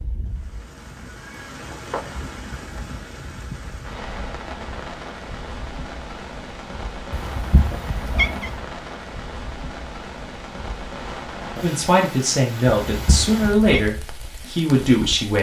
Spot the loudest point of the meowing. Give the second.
8 s.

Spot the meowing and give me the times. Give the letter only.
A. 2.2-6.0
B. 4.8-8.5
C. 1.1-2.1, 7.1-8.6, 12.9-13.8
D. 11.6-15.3
C.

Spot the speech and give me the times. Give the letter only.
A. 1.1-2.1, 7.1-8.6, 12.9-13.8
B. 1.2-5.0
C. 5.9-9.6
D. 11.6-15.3
D.